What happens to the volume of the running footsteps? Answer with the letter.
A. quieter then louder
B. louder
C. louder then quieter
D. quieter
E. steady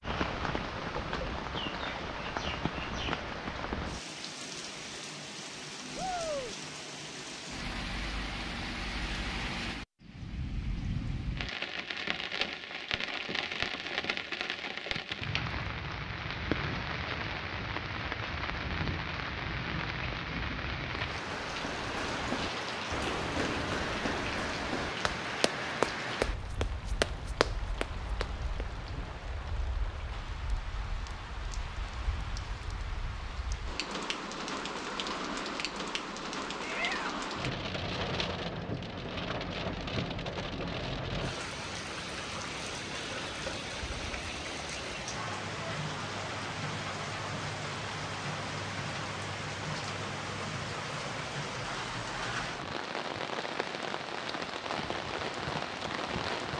B.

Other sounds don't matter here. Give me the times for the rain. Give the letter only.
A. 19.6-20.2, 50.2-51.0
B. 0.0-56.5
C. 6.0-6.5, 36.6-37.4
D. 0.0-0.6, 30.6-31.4
B.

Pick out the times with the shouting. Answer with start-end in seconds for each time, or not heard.
6.0-6.5, 36.6-37.4.